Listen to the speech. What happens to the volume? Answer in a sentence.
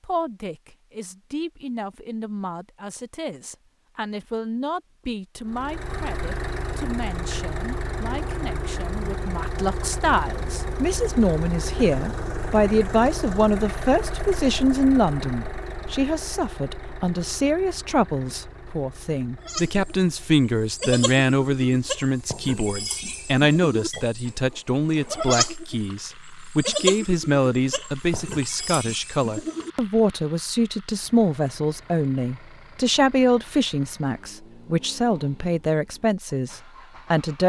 The volume of the speech goes up.